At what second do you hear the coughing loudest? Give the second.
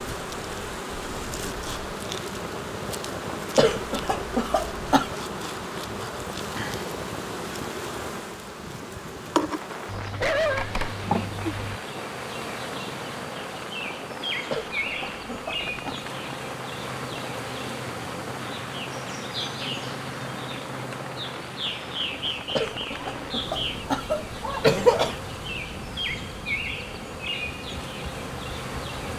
25 s.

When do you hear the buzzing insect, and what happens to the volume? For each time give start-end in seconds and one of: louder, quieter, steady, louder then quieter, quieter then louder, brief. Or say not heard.
0.0-29.1 steady.